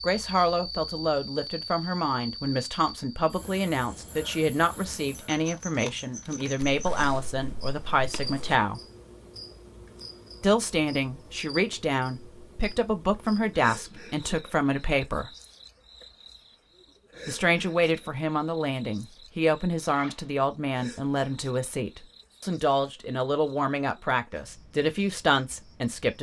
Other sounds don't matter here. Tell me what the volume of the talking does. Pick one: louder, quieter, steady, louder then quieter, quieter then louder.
steady.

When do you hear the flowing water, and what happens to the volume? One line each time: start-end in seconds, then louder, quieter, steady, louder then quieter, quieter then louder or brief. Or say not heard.
not heard.